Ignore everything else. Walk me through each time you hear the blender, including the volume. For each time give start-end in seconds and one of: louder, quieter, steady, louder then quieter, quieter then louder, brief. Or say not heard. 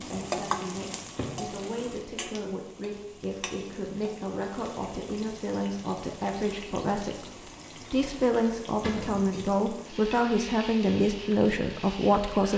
not heard.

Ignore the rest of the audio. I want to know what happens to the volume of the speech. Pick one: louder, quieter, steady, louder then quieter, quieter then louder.
louder.